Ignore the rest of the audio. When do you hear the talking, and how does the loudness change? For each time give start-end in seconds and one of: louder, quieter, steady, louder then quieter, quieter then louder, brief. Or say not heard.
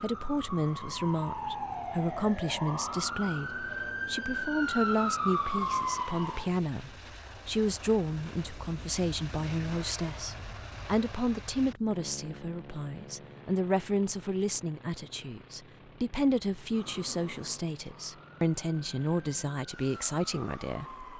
0.0-21.1 steady.